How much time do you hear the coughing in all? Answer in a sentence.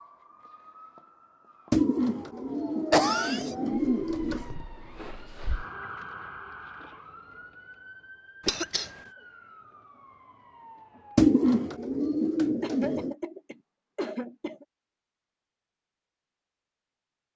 The coughing can be heard for 3 seconds in total.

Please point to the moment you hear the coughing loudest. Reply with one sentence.
The loudest moment of the coughing is at 3 seconds.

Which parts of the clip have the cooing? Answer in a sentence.
You can hear the cooing from 1.7 to 4.5 s and from 11.2 to 13.2 s.